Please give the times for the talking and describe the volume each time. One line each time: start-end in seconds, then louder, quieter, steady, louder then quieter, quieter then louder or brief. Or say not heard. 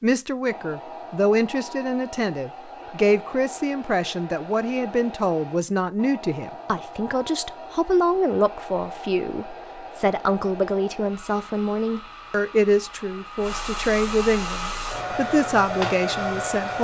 0.0-16.7 steady.